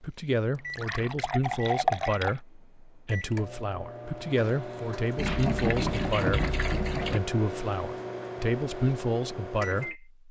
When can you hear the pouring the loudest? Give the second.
2 s.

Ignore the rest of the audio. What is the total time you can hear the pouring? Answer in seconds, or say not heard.
4 s.